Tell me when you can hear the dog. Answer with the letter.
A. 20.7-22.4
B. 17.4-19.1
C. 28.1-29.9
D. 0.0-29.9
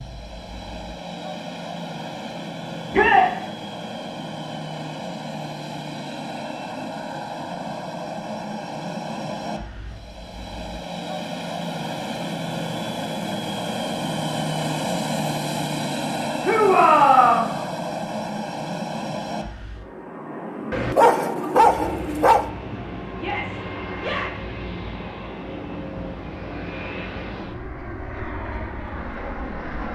A.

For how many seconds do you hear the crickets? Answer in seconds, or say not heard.
not heard.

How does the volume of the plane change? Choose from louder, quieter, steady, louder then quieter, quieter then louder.
louder then quieter.